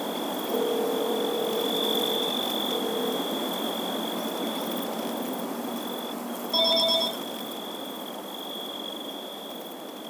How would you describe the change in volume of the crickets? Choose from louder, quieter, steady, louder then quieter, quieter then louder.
quieter.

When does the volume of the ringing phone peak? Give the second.
7 s.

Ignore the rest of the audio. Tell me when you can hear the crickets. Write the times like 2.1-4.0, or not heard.
0.0-10.0.